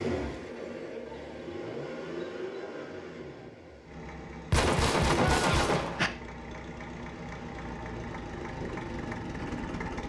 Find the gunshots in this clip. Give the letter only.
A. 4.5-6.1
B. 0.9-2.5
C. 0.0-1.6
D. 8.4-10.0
A.